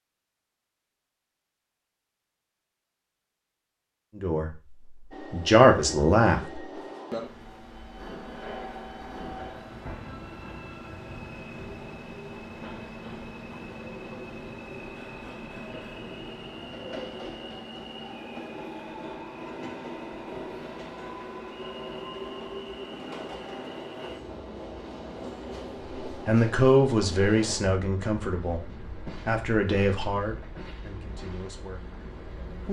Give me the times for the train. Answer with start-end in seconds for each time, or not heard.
5.1-32.6.